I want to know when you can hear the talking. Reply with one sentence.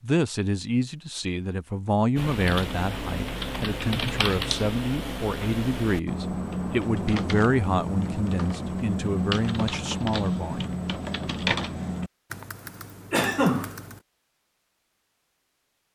The talking can be heard from 0.0 to 10.8 s.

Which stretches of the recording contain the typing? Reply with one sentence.
You can hear the typing from 2.1 to 14.0 s.